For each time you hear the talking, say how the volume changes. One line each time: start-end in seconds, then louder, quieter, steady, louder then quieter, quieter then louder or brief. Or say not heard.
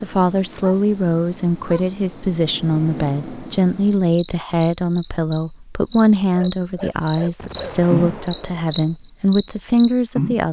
0.0-10.4 steady.